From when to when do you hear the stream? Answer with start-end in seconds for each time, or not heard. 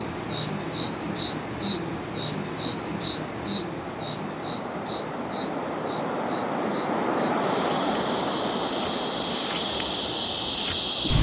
0.0-11.1.